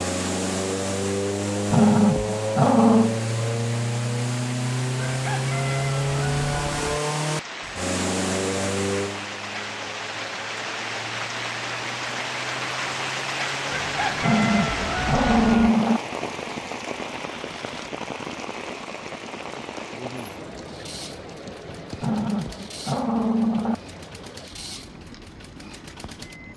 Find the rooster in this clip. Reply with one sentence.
You can hear the rooster from 5.1 to 7.0 s and from 13.7 to 15.8 s.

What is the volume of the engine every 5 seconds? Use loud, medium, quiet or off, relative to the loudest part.
loud, loud, quiet, quiet, quiet, quiet.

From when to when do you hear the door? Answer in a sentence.
You can't hear the door here.